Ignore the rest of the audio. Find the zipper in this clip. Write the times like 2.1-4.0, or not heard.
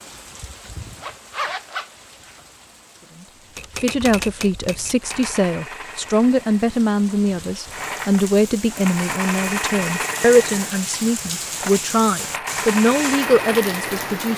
0.8-2.4.